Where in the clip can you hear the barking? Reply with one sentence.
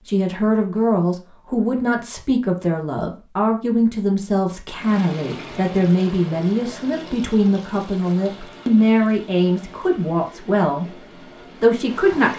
You can't hear the barking here.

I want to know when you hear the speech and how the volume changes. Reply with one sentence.
The speech can be heard from 0.1 to 12.3 s, at a steady volume.